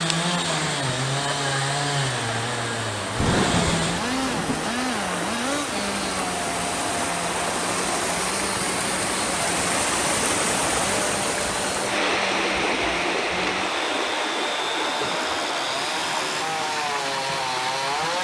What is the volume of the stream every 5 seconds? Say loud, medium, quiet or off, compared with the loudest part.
medium, loud, loud, medium.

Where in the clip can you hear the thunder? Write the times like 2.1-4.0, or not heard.
3.1-4.7.